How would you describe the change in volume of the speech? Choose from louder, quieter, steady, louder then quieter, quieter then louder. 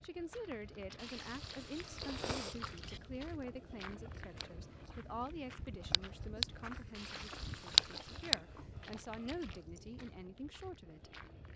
steady.